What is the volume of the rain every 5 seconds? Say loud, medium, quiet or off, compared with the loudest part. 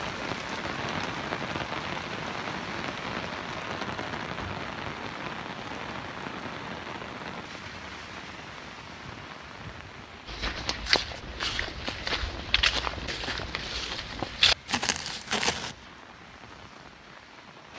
loud, medium, quiet, quiet.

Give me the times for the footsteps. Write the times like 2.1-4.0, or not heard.
10.2-15.8.